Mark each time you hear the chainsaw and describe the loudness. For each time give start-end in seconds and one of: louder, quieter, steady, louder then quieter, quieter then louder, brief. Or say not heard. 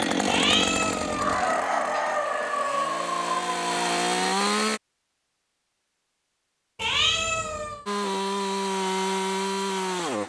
0.0-4.8 quieter then louder
7.8-10.2 brief.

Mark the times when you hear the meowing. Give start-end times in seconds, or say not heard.
0.2-1.5, 6.8-7.8.